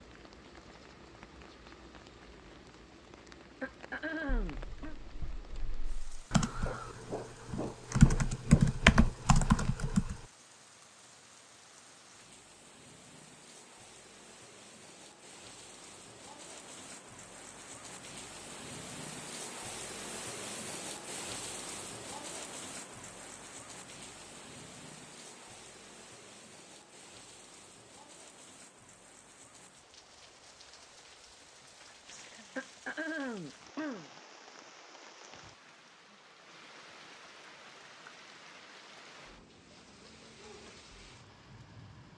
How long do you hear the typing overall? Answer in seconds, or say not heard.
6 s.